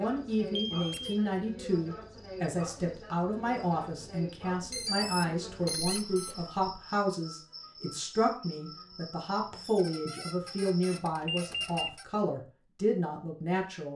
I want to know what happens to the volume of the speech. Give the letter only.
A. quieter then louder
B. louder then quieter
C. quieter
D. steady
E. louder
D.